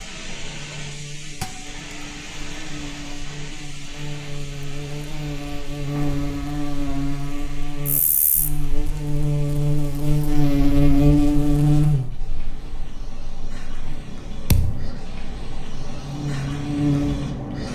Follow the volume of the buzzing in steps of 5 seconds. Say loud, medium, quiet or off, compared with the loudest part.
quiet, medium, loud, medium.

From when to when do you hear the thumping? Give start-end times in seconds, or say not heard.
1.4-1.8, 14.5-14.9.